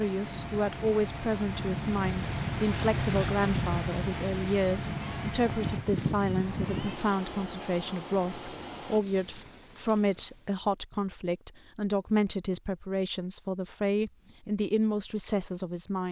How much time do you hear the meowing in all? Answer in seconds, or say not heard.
2 s.